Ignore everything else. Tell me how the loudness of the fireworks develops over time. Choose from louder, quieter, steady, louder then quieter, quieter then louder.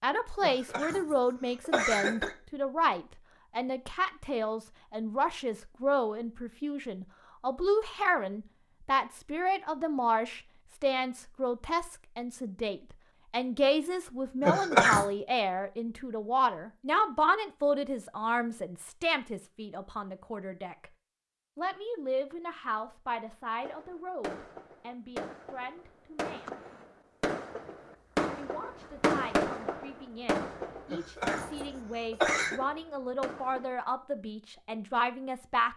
louder then quieter.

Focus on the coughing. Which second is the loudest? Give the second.
15 s.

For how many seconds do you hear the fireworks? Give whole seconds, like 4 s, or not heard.
10 s.